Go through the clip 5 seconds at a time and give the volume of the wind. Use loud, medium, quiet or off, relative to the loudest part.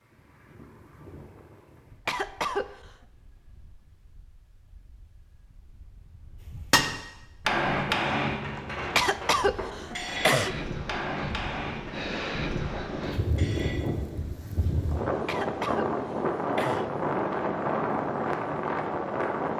quiet, quiet, medium, loud.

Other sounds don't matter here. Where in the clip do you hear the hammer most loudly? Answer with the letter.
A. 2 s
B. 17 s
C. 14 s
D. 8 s
D.